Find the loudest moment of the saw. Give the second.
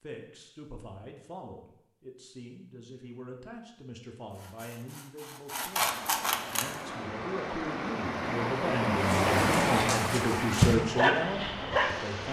6 s.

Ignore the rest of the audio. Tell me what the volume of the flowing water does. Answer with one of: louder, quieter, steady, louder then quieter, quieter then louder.
louder then quieter.